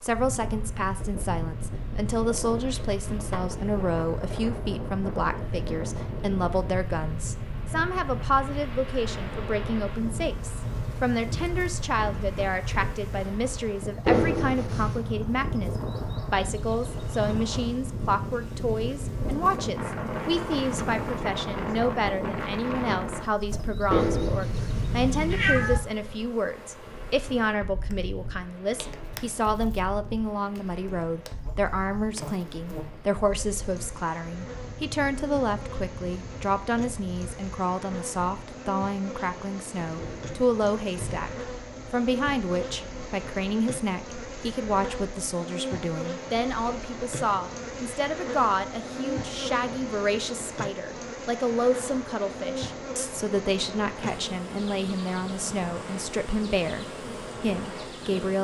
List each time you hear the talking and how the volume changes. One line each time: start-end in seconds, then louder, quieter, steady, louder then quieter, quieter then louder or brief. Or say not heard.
0.0-41.3 steady
41.9-58.4 steady.